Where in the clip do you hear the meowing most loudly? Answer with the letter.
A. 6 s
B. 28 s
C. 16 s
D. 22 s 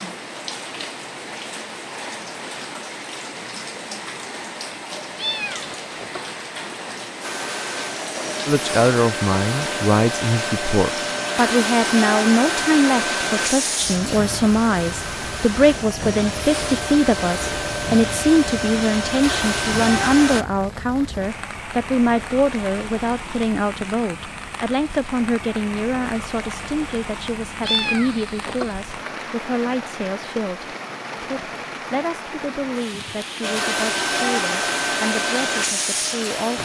B.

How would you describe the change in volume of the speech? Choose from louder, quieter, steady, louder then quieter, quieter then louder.
quieter.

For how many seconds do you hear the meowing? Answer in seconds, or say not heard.
2 s.